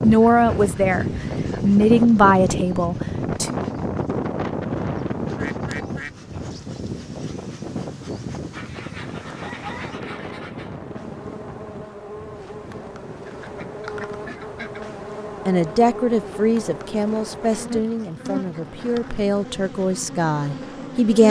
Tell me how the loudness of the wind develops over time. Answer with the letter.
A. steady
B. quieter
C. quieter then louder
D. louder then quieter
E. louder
B.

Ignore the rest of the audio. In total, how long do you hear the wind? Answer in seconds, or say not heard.
21 s.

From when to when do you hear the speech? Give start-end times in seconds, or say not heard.
0.0-3.5, 15.4-21.2.